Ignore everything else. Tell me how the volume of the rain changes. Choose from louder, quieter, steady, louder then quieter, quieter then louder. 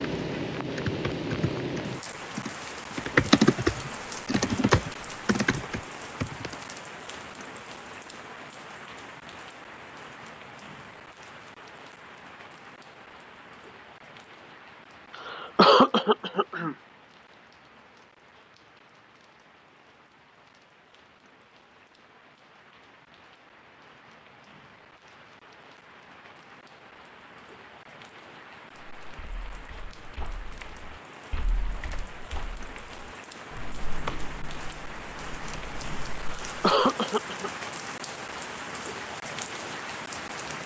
quieter then louder.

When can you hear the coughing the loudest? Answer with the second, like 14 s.
16 s.